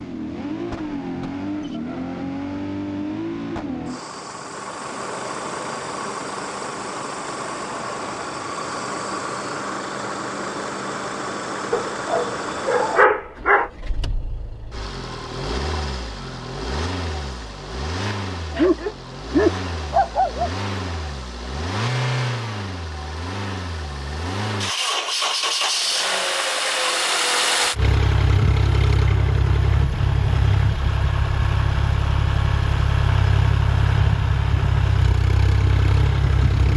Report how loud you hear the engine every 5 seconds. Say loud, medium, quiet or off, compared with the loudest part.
medium, medium, medium, medium, medium, loud, loud, loud.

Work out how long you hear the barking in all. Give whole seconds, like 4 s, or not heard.
4 s.